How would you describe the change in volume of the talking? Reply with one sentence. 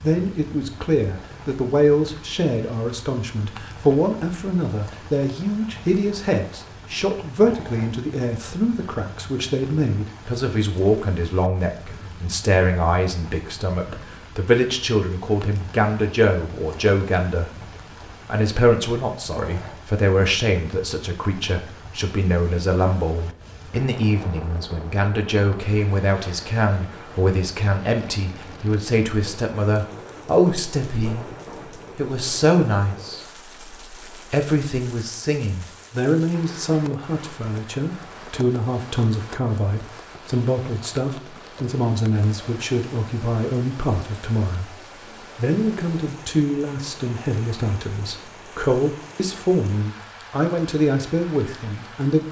The loudness of the talking stays about the same.